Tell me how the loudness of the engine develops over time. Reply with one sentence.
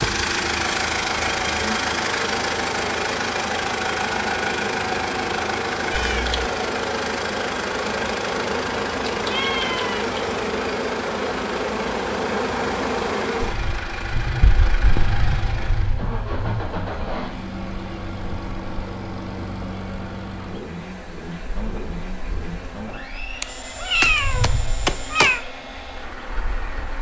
The volume of the engine goes down.